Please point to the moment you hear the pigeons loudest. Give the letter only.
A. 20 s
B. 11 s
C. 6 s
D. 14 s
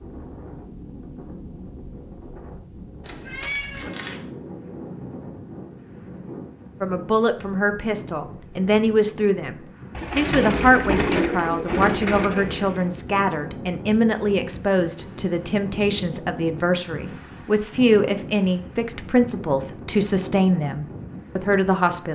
B.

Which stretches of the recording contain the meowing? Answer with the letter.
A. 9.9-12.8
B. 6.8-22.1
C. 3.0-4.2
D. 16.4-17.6
C.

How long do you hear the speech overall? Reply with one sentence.
The speech can be heard for 15 seconds in total.